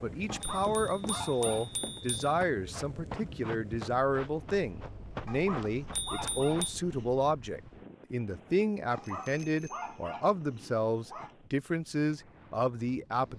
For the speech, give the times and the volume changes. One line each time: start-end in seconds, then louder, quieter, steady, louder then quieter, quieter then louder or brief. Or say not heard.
0.0-13.3 steady.